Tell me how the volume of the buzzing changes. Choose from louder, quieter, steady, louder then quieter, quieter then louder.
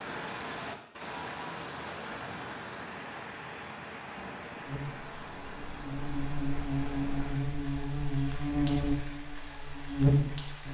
louder.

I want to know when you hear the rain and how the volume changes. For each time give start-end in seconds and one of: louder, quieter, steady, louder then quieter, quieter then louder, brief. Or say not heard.
0.0-10.7 quieter.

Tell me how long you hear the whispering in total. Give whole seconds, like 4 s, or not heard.
not heard.